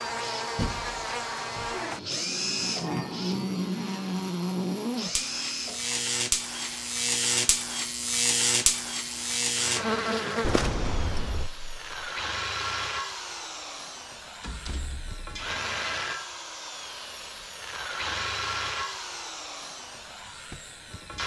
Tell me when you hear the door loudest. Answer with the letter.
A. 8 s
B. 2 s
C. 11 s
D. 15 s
C.